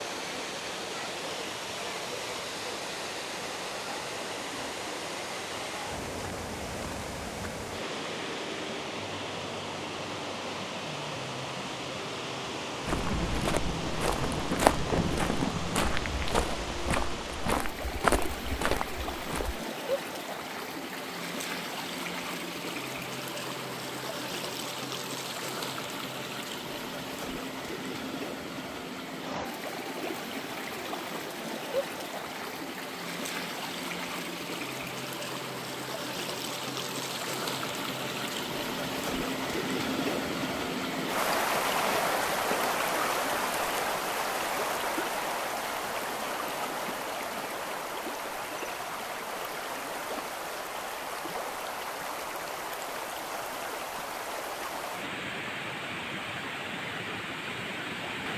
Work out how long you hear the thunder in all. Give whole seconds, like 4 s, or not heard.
3 s.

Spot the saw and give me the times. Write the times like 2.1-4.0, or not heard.
not heard.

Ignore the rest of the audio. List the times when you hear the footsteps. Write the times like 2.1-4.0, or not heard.
12.8-19.6.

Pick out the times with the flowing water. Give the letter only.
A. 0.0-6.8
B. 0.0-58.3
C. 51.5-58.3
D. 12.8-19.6
B.